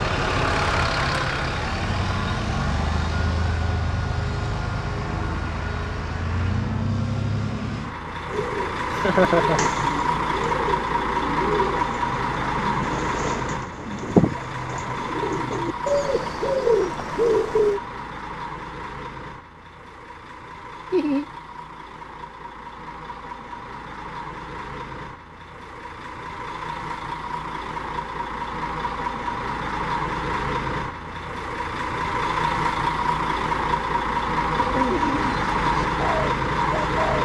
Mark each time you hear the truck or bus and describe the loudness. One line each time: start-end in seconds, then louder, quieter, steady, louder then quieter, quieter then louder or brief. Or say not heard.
0.0-37.2 quieter then louder.